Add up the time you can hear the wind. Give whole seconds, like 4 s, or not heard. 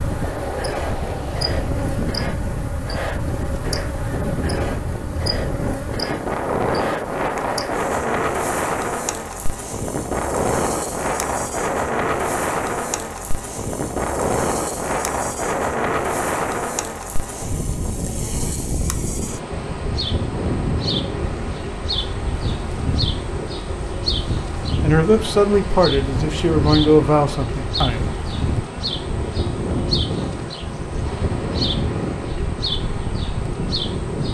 34 s.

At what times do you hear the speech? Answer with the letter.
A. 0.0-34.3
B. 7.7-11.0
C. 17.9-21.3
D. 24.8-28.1
D.